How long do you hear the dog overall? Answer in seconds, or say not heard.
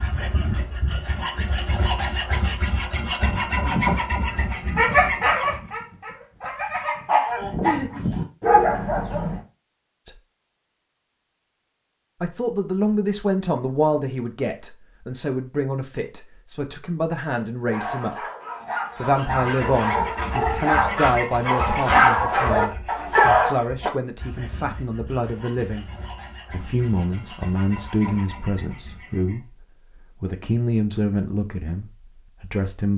12 s.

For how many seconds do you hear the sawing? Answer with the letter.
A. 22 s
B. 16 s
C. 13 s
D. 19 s
B.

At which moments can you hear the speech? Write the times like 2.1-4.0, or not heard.
12.2-18.1, 18.9-25.9, 26.5-32.9.